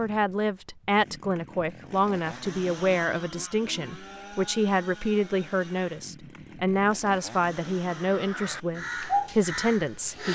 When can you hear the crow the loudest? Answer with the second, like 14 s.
9 s.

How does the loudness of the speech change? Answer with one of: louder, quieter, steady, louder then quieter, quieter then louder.
steady.